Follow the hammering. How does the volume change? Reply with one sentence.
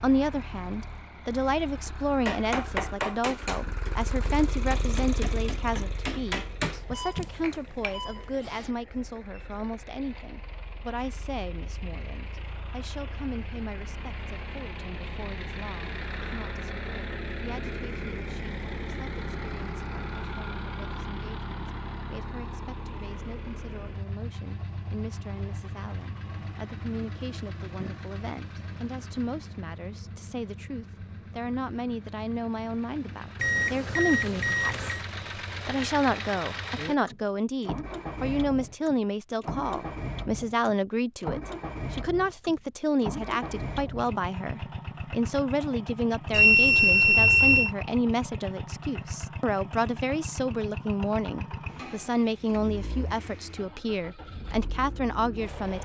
The volume of the hammering goes down, then up.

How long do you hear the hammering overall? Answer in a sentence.
You can hear the hammering for 6 seconds altogether.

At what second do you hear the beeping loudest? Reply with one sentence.
The loudest moment of the beeping is at 47 seconds.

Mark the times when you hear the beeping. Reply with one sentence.
The beeping can be heard from 6.7 to 8.7 s, from 33.4 to 35.0 s and from 46.3 to 47.7 s.